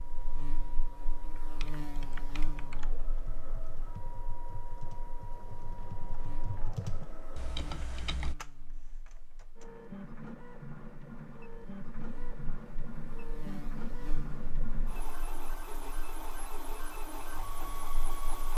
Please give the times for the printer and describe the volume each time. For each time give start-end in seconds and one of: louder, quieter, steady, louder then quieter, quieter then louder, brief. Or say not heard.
0.0-18.5 louder.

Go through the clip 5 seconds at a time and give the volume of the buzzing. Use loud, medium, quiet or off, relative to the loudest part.
loud, medium, loud, medium.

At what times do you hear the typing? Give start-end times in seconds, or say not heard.
1.2-8.3.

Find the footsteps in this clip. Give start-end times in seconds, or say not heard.
not heard.